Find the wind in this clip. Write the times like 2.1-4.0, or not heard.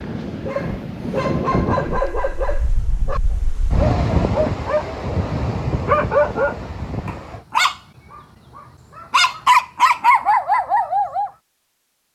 0.0-7.5.